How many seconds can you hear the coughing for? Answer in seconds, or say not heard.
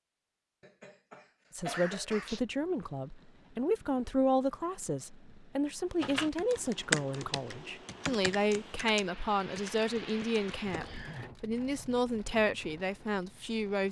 2 s.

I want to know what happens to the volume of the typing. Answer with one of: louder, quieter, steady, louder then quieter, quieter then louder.
quieter.